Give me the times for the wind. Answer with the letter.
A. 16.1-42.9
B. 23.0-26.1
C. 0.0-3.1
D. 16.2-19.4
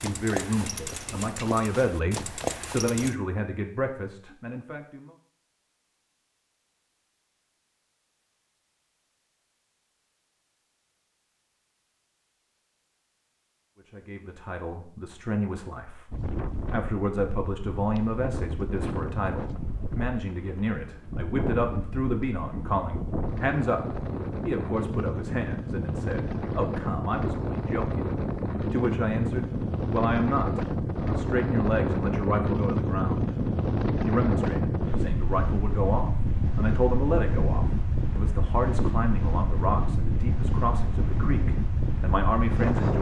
A.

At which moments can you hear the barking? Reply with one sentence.
The barking can't be heard in this clip.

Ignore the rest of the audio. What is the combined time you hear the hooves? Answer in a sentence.
The hooves can be heard for 3 seconds in total.